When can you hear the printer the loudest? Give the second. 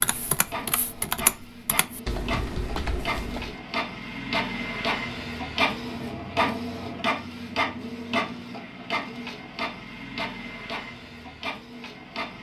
6 s.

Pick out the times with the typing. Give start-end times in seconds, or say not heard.
0.0-3.6.